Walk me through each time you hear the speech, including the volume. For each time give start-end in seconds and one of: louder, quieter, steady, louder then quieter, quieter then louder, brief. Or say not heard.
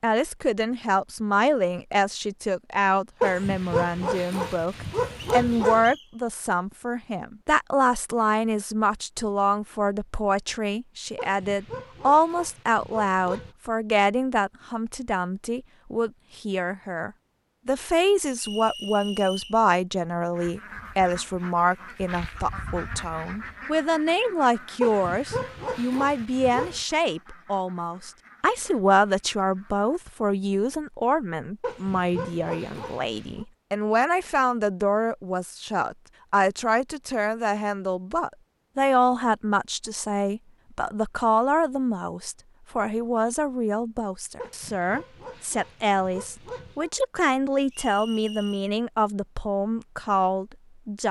0.0-51.0 steady.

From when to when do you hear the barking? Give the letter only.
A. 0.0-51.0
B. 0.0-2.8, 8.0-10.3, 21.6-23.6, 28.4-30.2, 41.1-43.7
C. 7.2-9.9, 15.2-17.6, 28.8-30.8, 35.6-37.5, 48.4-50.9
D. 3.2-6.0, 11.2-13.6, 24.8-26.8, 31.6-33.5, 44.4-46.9
D.